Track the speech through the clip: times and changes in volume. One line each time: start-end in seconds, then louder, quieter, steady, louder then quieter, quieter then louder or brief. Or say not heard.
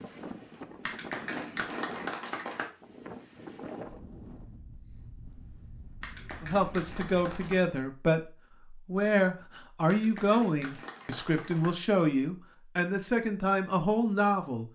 6.4-14.7 steady.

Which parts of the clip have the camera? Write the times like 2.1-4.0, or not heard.
not heard.